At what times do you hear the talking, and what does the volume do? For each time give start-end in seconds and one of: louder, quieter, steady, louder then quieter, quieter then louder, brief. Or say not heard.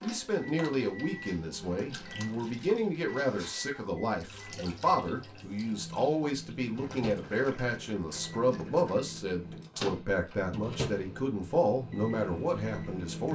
0.0-13.3 steady.